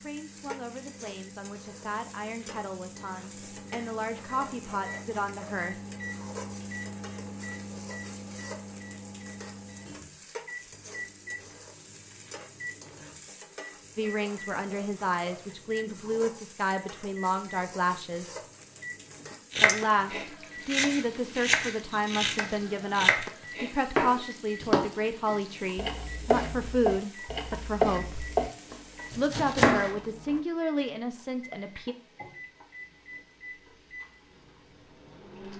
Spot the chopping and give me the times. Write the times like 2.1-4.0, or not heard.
19.5-30.4.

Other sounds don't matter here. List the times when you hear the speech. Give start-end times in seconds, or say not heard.
0.0-5.8, 13.9-18.4, 19.6-28.2, 29.1-31.9.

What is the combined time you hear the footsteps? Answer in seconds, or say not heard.
not heard.